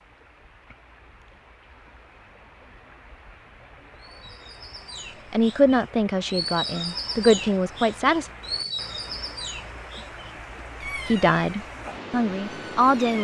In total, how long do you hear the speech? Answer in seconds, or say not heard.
5 s.